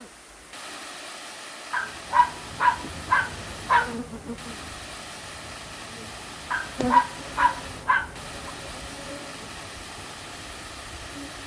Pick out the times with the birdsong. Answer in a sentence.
You can't hear the birdsong here.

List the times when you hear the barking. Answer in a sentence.
You can hear the barking from 1.7 to 3.9 s and from 6.5 to 8.5 s.